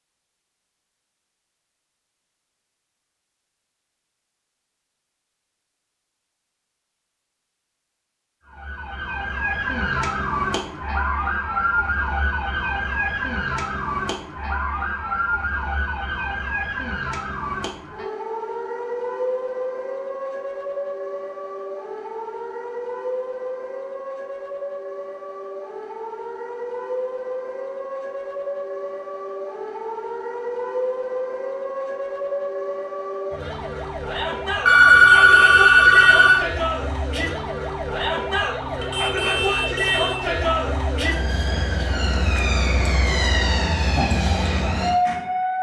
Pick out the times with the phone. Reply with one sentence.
You can hear the phone from 34.6 to 36.5 s.